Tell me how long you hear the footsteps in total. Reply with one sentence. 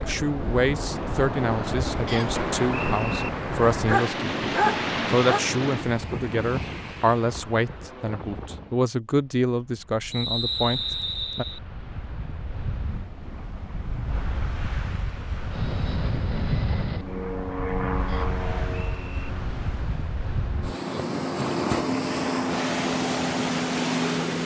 The footsteps can't be heard in this clip.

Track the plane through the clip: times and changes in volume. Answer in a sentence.
The plane can be heard from 15.5 to 24.4 s, getting quieter then louder.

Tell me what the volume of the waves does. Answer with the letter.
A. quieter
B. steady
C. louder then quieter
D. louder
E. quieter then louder
E.